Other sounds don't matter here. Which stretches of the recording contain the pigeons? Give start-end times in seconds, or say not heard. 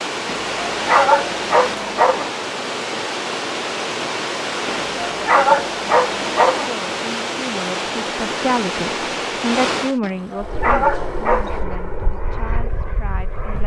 not heard.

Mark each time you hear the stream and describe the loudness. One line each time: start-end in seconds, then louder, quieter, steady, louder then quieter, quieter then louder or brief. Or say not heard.
0.0-10.0 steady.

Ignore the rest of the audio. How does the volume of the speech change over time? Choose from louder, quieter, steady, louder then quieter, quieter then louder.
louder then quieter.